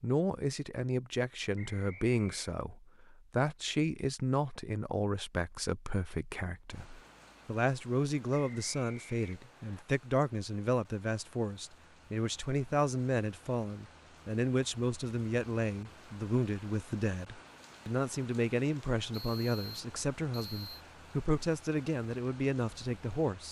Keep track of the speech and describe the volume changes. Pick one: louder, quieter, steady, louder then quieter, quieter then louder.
steady.